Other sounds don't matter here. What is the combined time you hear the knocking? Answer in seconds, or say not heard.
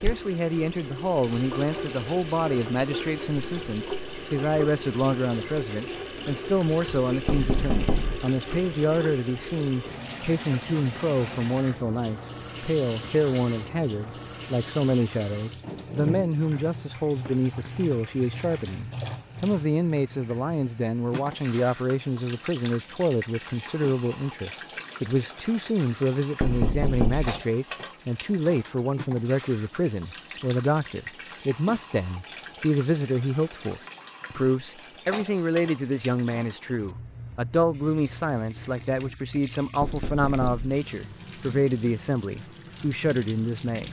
3 s.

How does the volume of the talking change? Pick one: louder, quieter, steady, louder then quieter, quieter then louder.
steady.